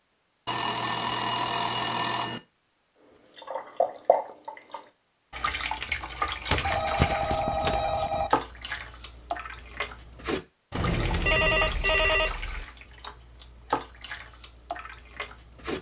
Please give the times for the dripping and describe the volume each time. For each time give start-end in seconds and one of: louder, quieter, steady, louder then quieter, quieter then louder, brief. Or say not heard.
3.4-15.7 quieter.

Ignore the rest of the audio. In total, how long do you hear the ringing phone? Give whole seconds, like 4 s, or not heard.
6 s.